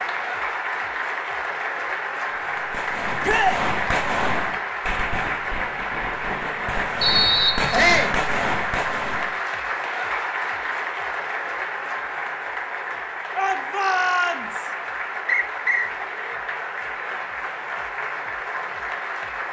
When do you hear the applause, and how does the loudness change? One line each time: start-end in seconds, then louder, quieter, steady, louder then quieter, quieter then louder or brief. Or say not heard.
0.0-19.4 steady.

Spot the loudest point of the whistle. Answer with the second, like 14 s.
7 s.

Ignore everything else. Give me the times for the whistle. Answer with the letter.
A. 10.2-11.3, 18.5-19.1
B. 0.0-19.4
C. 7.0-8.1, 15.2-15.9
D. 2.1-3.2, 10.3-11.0
C.